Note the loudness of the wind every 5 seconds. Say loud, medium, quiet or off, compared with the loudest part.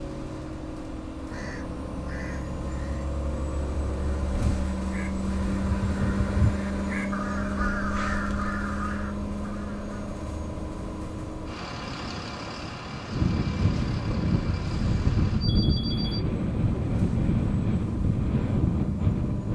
off, off, medium, loud.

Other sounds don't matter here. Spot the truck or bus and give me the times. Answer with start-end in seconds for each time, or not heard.
0.0-19.5.